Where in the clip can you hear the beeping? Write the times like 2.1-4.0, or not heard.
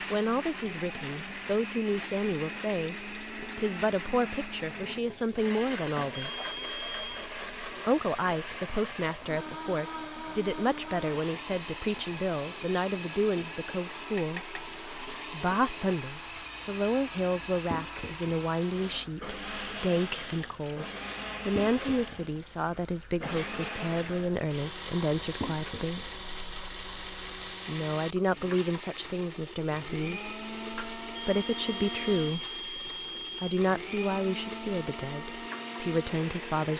6.1-7.2, 31.1-33.6.